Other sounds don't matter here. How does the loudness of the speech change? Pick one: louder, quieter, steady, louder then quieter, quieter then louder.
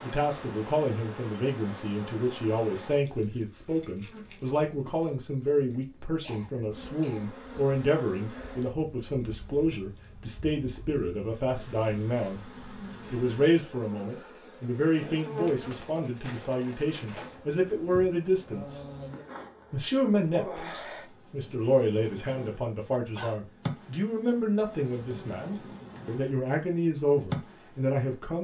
steady.